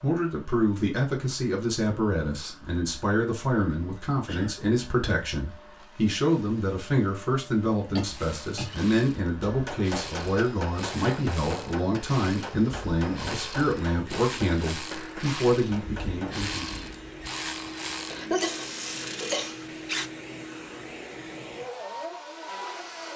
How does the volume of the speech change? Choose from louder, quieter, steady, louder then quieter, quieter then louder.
steady.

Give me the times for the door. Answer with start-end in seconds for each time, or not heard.
not heard.